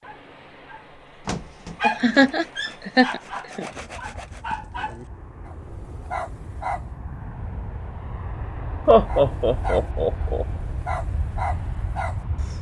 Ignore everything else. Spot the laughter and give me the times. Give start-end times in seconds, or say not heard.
1.8-3.7, 8.8-10.4.